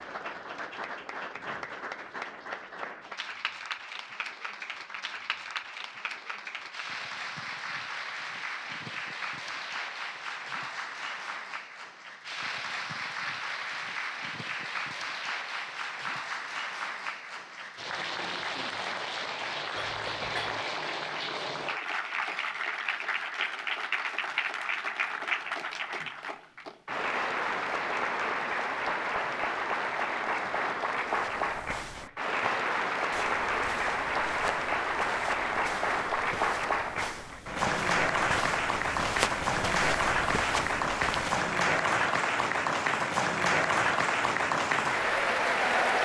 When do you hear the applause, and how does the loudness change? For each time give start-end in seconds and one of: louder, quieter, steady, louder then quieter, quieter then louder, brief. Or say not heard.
0.0-45.9 louder.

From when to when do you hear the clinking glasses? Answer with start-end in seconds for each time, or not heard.
19.8-20.6.